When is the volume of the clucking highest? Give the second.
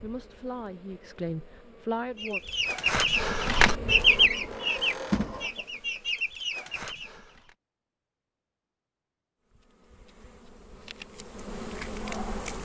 4 s.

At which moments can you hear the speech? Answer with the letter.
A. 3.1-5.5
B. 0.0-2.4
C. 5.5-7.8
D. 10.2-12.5
B.